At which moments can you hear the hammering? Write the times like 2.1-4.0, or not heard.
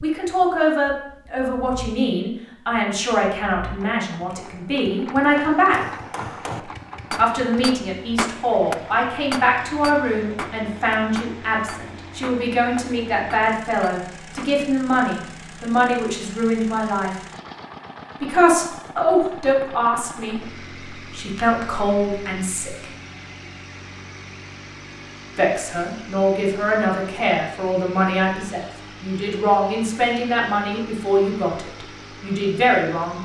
5.2-14.5.